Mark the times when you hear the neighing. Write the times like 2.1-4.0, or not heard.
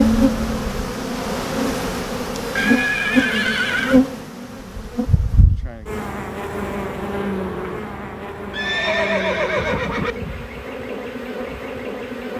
2.5-4.0, 8.5-10.2.